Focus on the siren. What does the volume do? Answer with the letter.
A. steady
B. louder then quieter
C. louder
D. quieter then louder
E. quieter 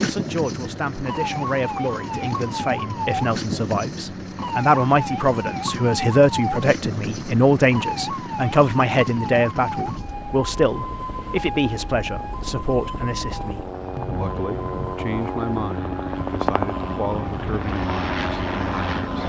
E.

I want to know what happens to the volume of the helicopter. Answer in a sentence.
The loudness of the helicopter goes up.